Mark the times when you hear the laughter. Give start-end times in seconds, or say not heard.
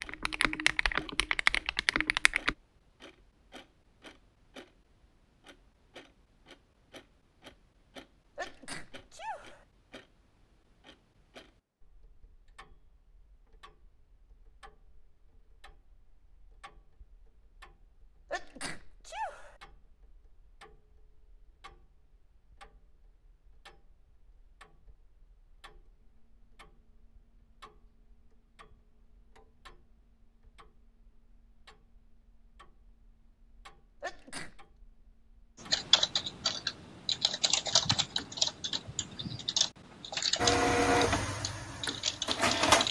not heard.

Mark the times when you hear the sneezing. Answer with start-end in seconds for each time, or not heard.
8.3-9.7, 18.2-19.6, 34.0-34.6.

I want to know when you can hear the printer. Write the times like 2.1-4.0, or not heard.
40.4-42.8.